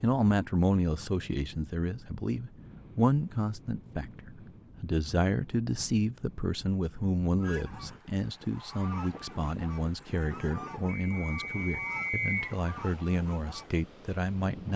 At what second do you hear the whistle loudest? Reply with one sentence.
The volume of the whistle peaks at 12 seconds.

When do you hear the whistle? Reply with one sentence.
The whistle can be heard from 10.8 to 12.6 s.